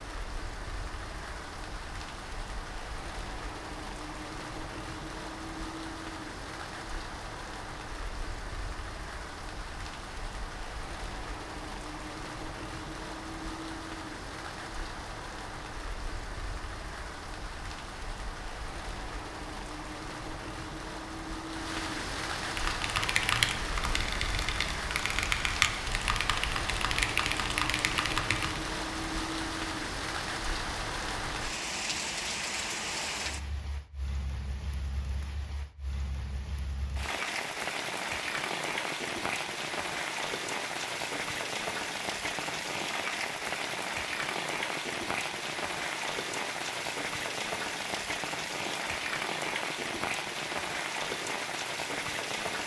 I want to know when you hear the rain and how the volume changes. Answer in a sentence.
The rain can be heard from 0.0 to 52.6 s, getting louder.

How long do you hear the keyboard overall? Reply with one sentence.
The keyboard can be heard for 6 seconds in total.